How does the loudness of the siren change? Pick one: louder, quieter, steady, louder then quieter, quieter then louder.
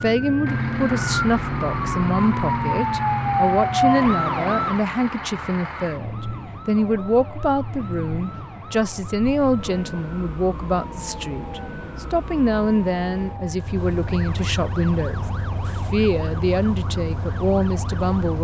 quieter.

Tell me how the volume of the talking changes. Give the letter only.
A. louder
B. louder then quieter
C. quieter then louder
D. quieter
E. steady
E.